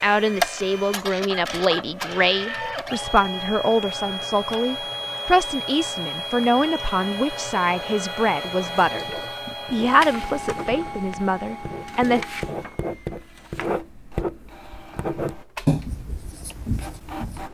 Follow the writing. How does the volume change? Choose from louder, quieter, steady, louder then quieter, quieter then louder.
louder.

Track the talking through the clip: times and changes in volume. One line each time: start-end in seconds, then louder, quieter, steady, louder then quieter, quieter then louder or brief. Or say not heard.
0.0-12.2 steady.